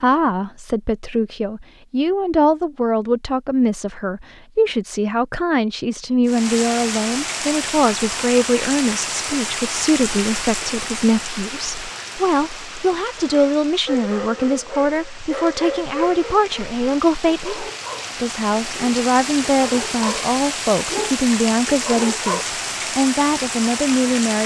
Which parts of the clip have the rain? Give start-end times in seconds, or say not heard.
6.2-24.4.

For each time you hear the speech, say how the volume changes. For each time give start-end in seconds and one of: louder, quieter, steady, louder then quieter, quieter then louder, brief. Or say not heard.
0.0-24.4 steady.